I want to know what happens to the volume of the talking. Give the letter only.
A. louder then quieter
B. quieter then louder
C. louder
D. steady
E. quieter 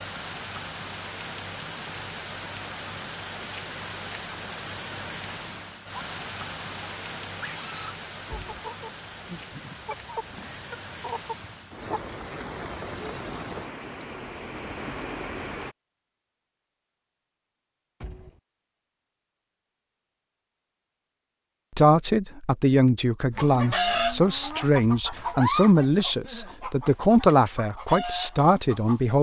D.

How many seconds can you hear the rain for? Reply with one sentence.
You can hear the rain for 16 seconds altogether.